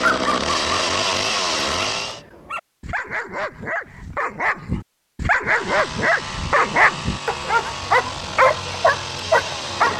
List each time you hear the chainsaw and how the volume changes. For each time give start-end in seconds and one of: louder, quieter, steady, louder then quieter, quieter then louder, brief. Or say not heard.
0.0-2.2 brief
5.5-9.9 steady.